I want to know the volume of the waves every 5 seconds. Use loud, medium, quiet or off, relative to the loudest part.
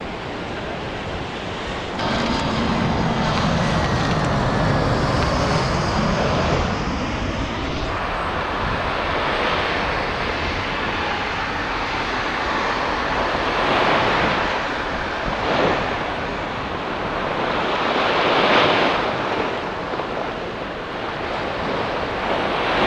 medium, medium, loud, loud, loud.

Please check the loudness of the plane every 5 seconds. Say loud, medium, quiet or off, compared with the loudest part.
loud, loud, loud, medium, medium.